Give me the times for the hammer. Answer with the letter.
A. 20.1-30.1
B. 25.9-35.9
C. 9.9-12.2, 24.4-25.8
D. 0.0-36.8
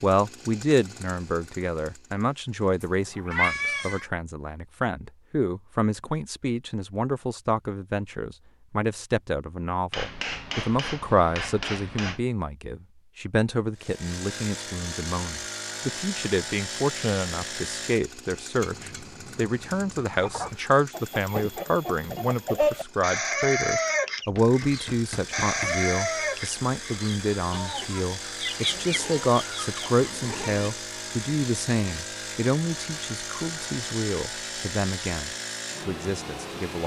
C.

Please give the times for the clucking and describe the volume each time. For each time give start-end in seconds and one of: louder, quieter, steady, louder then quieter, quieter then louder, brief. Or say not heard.
20.1-30.1 louder then quieter.